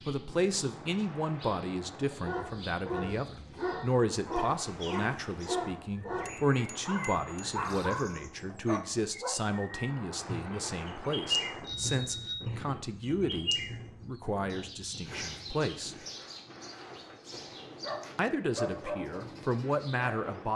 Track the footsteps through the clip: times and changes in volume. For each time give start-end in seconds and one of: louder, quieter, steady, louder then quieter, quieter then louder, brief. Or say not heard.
not heard.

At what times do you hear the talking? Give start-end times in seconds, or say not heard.
0.1-15.9, 18.1-20.5.